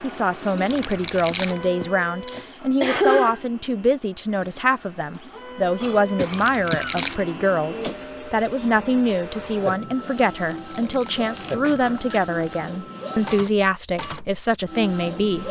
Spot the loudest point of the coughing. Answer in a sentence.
The loudest moment of the coughing is at 3 seconds.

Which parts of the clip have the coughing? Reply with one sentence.
You can hear the coughing from 1.8 to 3.4 s, from 5.8 to 7.0 s and from 11.6 to 12.2 s.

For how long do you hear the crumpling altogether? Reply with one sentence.
You can hear the crumpling for 4 seconds altogether.